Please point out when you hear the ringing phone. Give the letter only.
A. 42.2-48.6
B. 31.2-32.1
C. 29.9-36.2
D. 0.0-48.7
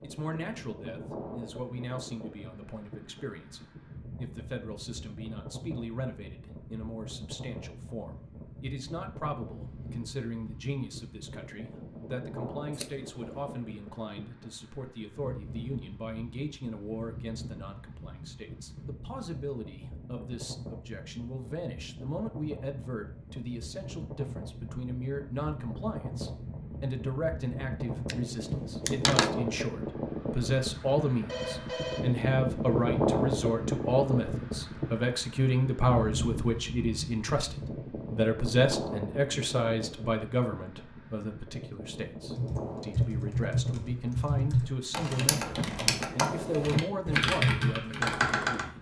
B.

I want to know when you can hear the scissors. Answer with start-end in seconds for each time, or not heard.
12.7-13.6, 28.1-29.4.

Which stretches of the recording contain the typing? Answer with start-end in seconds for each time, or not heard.
42.2-48.6.